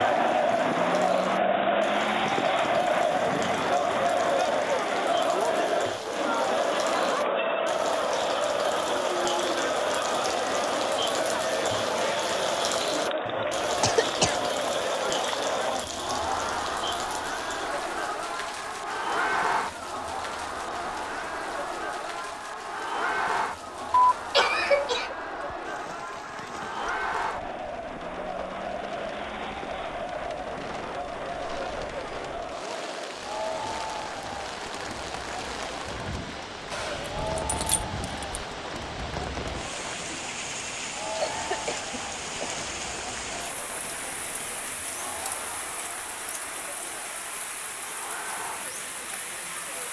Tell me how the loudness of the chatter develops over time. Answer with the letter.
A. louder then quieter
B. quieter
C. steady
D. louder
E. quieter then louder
B.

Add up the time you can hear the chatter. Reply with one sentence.
The chatter can be heard for 50 seconds in total.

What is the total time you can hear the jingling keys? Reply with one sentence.
The jingling keys can be heard for 2 seconds in total.